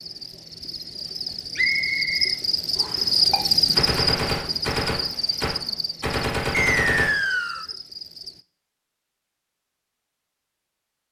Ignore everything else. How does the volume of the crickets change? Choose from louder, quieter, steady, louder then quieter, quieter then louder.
louder then quieter.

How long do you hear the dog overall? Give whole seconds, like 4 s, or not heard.
not heard.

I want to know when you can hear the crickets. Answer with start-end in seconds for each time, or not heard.
0.0-8.4.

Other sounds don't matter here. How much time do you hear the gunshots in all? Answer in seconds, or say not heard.
4 s.